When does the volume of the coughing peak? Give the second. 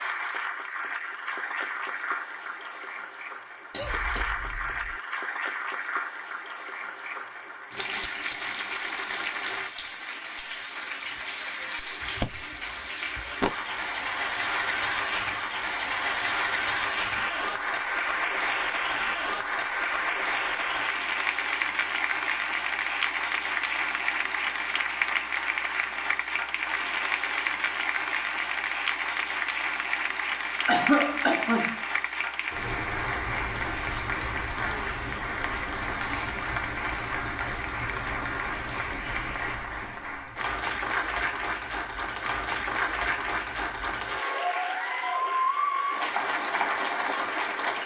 31 s.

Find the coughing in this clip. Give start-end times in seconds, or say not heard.
3.7-5.0, 30.6-31.9.